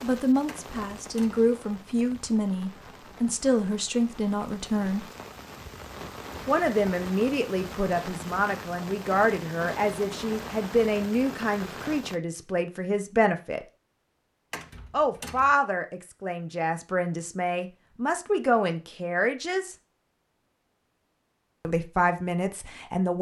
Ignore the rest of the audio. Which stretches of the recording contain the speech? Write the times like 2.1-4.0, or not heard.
0.0-5.0, 6.5-13.7, 14.9-19.8, 21.6-23.1.